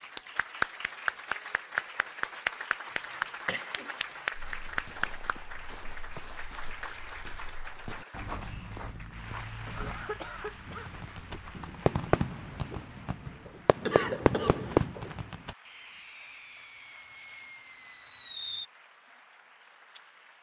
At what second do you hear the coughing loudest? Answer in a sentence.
The volume of the coughing peaks at 14 seconds.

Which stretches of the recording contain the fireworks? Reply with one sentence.
The fireworks can be heard from 10.7 to 18.6 s.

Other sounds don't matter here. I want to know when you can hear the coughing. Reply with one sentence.
The coughing can be heard from 2.9 to 4.2 s, from 9.7 to 10.9 s and from 13.8 to 14.8 s.